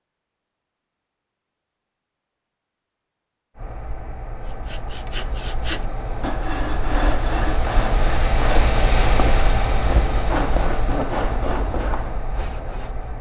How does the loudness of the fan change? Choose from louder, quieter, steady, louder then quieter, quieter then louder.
louder then quieter.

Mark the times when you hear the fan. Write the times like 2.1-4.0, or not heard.
3.5-13.1.